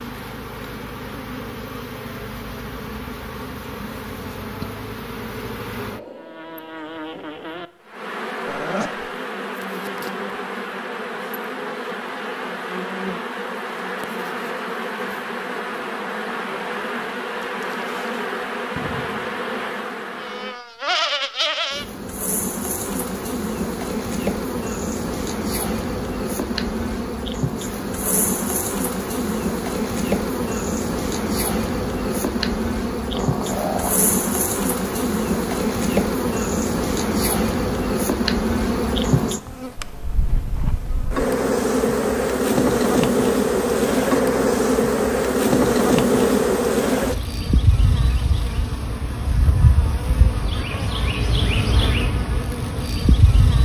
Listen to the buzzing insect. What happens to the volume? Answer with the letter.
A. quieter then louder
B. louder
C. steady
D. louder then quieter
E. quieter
B.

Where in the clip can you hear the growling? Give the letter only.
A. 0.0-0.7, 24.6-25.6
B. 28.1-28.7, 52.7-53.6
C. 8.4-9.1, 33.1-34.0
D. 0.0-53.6
C.